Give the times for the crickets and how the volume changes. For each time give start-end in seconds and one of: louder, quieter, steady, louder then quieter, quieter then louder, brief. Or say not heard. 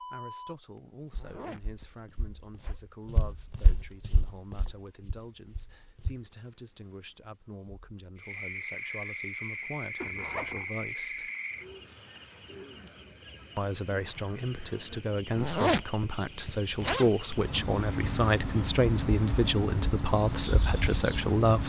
0.0-21.6 louder.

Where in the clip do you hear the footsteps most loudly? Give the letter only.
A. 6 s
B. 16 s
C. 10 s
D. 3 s
D.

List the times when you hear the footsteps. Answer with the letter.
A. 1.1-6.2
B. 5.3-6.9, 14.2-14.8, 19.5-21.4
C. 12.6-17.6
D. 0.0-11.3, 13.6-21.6
A.